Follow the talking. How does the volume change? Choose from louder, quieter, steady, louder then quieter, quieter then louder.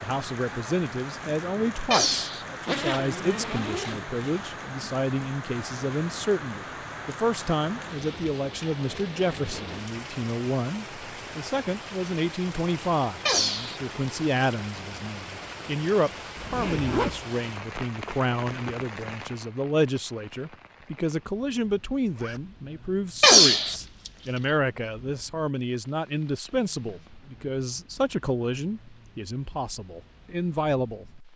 steady.